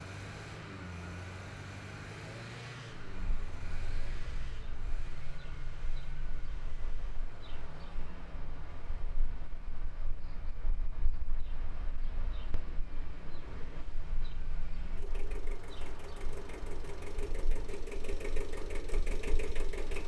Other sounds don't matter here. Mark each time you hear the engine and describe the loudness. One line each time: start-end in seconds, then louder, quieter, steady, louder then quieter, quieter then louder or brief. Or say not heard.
0.0-20.0 quieter then louder.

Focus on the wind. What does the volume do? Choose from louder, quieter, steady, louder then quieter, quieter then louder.
steady.